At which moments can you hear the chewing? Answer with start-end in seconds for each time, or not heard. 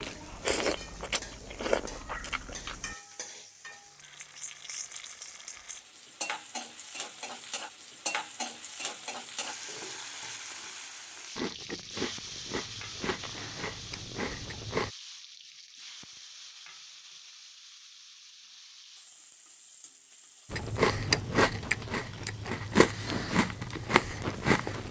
0.0-3.0, 11.3-14.9, 20.5-24.8.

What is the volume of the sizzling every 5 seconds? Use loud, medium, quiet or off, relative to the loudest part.
medium, loud, loud, medium, quiet.